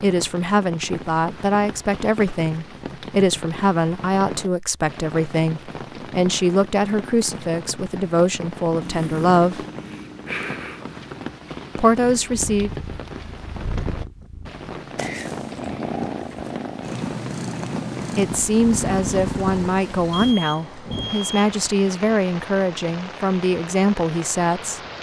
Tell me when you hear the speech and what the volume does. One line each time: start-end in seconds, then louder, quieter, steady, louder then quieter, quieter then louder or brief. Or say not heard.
0.0-9.7 steady
11.8-12.7 brief
18.1-24.8 steady.